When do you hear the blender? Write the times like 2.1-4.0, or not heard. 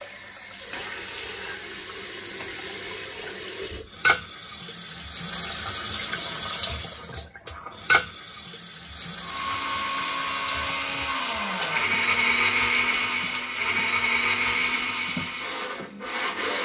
9.2-16.6.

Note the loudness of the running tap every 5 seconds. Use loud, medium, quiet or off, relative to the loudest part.
loud, loud, medium, medium.